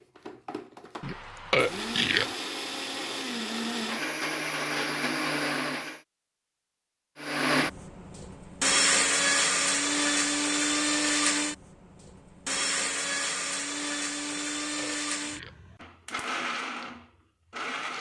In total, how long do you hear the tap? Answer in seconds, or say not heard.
not heard.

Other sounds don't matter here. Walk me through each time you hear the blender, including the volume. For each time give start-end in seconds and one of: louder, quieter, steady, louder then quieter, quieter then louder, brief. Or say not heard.
0.0-6.0 louder
7.2-17.9 quieter.